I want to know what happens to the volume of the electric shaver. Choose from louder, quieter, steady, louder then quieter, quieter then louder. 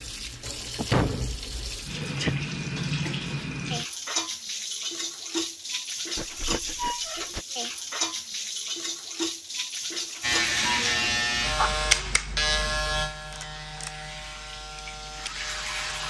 quieter.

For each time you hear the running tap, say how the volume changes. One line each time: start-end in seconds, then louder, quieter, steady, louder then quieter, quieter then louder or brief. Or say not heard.
0.0-16.0 quieter.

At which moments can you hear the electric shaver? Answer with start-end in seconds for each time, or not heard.
10.2-16.0.